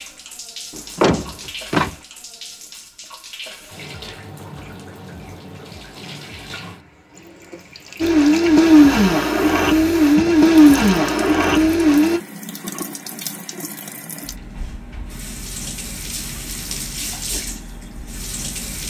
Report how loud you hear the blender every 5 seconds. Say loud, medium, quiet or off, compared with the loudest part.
off, loud, loud, off.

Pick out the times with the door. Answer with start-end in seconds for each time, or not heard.
0.8-1.9.